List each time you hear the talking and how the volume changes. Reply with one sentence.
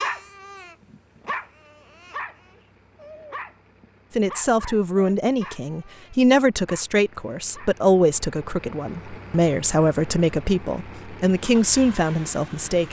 The talking can be heard from 4.2 to 12.8 s, at a steady volume.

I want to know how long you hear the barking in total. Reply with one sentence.
You can hear the barking for 8 seconds altogether.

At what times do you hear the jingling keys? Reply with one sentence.
You can't hear the jingling keys here.